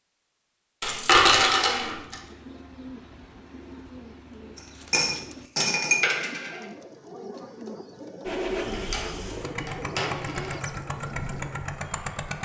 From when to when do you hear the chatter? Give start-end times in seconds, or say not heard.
not heard.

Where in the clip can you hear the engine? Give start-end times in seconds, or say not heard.
8.2-12.4.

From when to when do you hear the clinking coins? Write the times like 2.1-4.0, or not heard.
0.8-2.1, 4.5-6.5, 8.7-10.6.